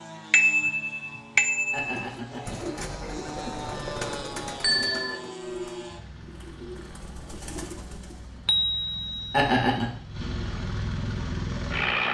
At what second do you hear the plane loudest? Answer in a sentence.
The loudest moment of the plane is at 12 seconds.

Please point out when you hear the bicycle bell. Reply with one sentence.
The bicycle bell can be heard from 0.3 to 2.0 s, from 4.6 to 5.2 s and from 8.4 to 9.8 s.